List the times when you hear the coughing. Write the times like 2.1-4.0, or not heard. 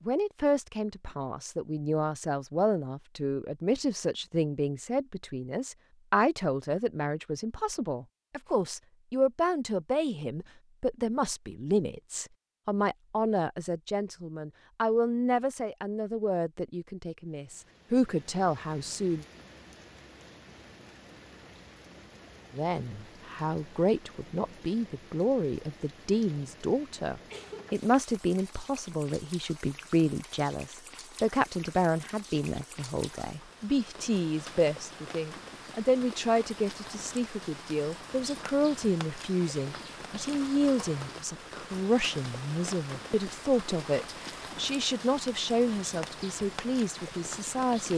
27.1-27.8.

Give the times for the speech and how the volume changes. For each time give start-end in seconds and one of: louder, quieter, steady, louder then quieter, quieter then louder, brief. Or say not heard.
0.0-19.2 steady
22.5-47.9 steady.